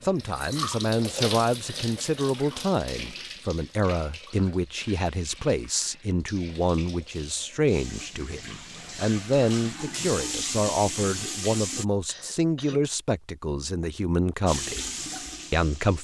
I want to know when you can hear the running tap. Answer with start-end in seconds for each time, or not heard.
0.0-11.8, 14.4-16.0.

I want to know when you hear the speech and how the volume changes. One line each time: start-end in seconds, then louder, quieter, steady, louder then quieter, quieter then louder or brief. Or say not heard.
0.0-14.9 steady
15.5-16.0 brief.